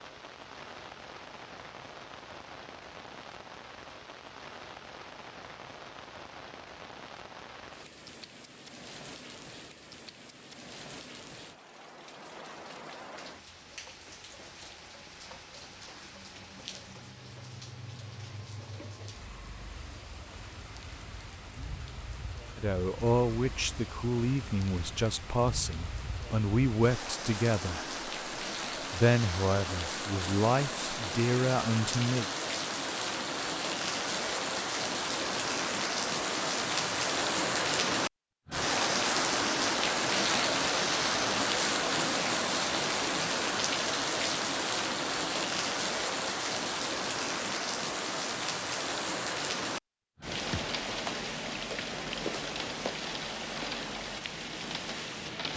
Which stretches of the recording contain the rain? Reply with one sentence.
The rain can be heard from 0.0 to 55.5 s.